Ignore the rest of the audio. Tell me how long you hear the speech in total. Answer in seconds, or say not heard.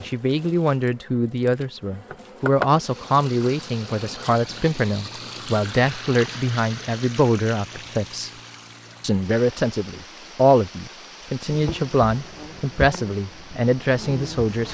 14 s.